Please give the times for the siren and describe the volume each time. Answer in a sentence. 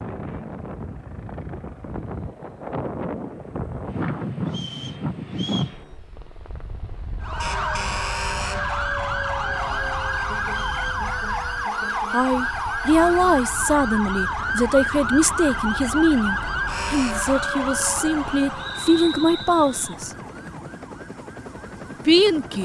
The siren can be heard from 7.2 to 22.5 s, getting quieter.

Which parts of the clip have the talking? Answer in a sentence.
The talking can be heard from 12.1 to 20.1 s and from 22.1 to 22.5 s.